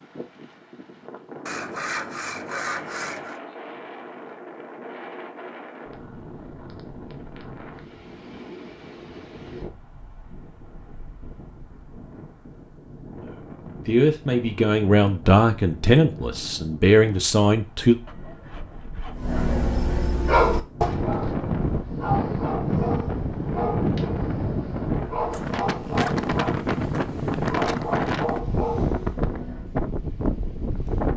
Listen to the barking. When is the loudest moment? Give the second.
20 s.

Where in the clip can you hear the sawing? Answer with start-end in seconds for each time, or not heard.
1.4-3.4, 18.1-19.4.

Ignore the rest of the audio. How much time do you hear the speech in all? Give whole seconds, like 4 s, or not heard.
5 s.